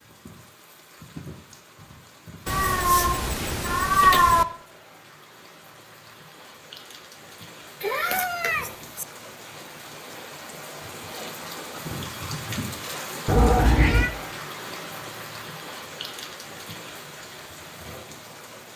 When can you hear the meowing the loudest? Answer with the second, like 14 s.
4 s.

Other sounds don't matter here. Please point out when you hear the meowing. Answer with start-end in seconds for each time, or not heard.
2.5-4.5, 7.8-9.1, 13.2-14.1.